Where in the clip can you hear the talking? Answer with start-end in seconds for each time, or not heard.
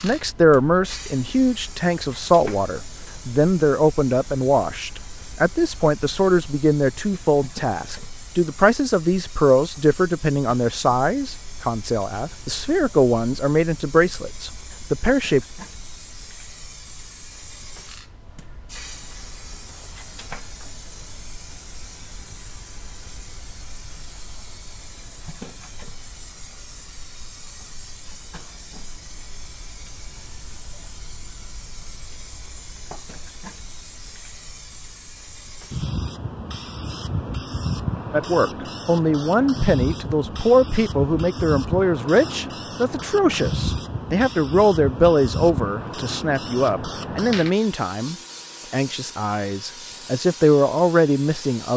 0.0-15.4, 38.1-51.7.